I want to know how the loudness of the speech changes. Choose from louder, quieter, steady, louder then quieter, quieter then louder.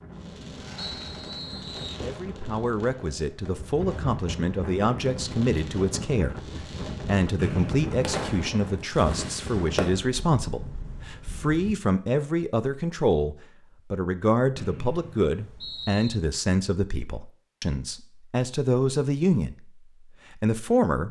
steady.